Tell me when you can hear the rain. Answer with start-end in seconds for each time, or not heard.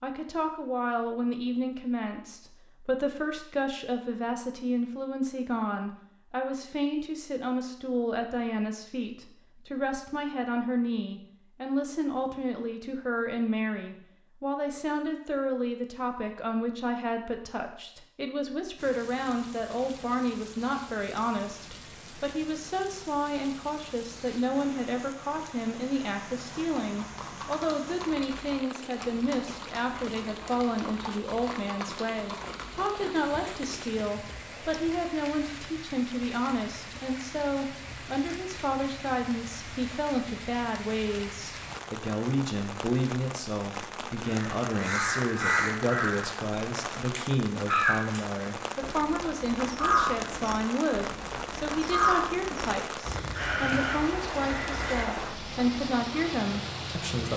18.8-57.3.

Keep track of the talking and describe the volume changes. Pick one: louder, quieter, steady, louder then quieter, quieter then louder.
steady.